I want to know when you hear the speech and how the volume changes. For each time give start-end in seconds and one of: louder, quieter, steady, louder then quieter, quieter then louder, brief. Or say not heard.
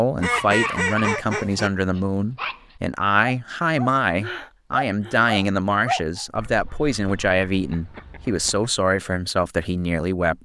0.0-10.3 steady.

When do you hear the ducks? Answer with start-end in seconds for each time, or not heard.
0.1-1.7, 6.3-8.7.